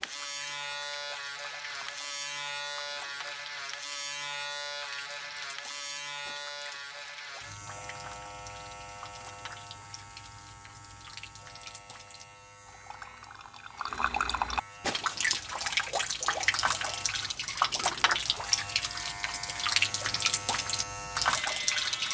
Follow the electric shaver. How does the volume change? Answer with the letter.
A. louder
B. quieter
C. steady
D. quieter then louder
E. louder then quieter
D.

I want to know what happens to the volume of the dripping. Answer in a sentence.
The volume of the dripping goes up.